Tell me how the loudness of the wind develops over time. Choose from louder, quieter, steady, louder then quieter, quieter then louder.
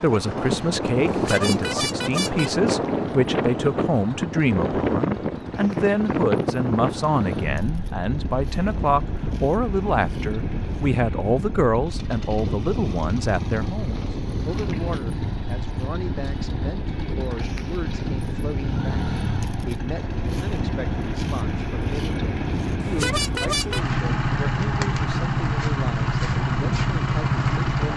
quieter.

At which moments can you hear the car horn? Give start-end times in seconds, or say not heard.
1.1-2.5, 22.8-23.9.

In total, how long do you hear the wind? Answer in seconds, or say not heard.
28 s.